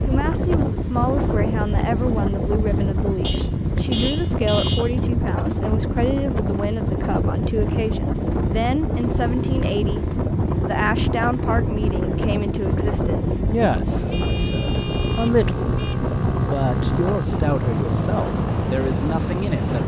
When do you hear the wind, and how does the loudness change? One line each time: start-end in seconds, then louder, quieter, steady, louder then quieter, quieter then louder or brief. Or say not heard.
0.0-19.8 steady.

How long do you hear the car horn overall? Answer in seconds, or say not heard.
4 s.